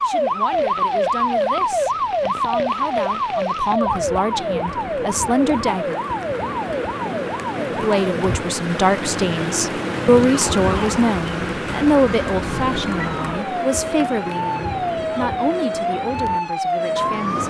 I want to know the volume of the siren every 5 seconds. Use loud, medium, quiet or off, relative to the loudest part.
loud, medium, medium, loud.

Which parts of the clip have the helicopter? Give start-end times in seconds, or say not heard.
not heard.